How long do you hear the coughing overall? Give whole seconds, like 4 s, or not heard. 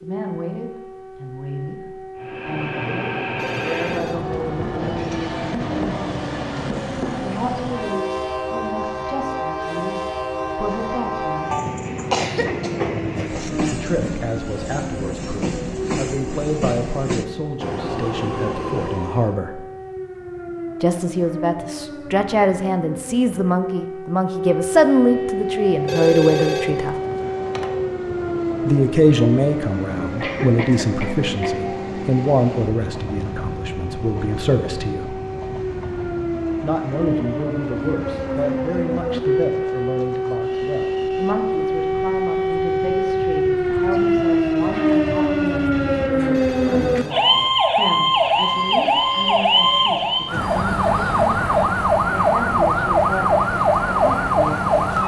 3 s.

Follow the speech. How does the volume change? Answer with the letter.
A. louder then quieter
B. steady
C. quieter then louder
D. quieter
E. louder
A.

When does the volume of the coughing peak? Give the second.
12 s.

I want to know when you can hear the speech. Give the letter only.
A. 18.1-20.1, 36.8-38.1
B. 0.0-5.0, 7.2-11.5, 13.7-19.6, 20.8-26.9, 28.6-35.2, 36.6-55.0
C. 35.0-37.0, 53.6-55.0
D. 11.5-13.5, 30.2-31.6
B.